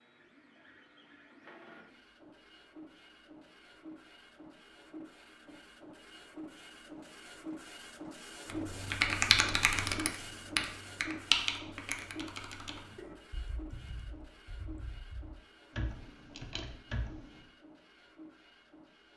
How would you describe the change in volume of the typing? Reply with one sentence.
The volume of the typing goes down, then up.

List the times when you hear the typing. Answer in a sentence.
You can hear the typing from 8.4 to 17.4 s.